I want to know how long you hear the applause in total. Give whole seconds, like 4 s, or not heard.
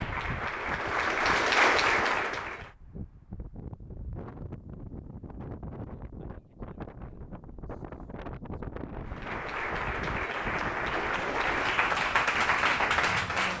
7 s.